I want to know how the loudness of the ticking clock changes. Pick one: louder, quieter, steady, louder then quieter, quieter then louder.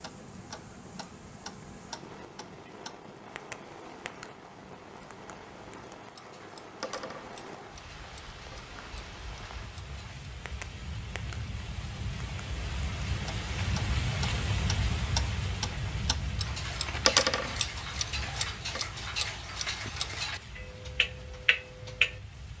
quieter then louder.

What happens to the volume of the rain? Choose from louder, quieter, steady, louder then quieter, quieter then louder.
louder then quieter.